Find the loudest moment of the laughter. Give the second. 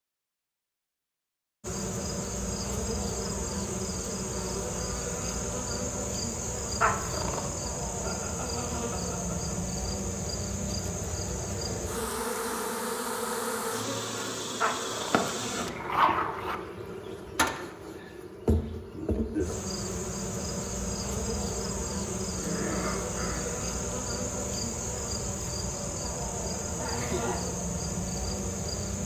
27 s.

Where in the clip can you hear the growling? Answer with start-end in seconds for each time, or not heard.
6.8-7.7, 14.6-16.6, 22.3-23.6.